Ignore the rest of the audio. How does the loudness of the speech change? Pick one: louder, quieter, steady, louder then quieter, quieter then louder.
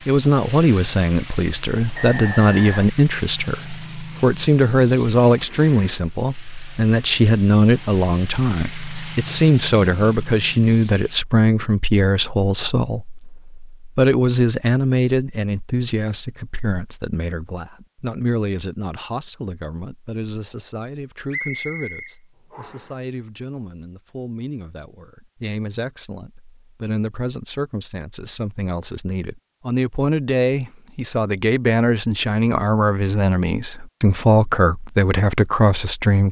quieter then louder.